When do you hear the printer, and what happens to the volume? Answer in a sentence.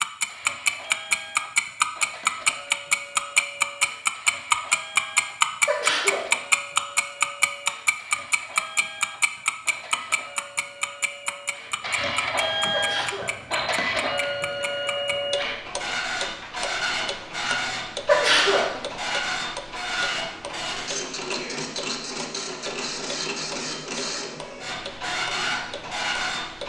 The printer can be heard from 0.1 to 26.6 s, getting louder.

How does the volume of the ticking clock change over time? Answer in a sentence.
The loudness of the ticking clock goes down.